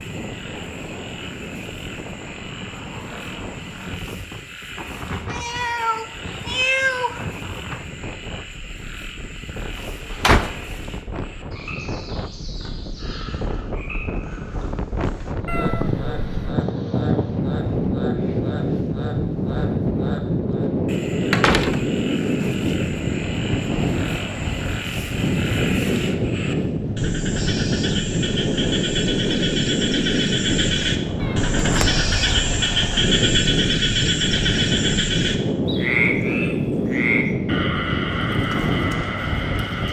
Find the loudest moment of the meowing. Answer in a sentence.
The loudest moment of the meowing is at 7 seconds.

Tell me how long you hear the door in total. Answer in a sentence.
You can hear the door for 4 seconds altogether.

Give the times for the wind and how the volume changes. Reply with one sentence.
The wind can be heard from 0.0 to 39.8 s, getting louder.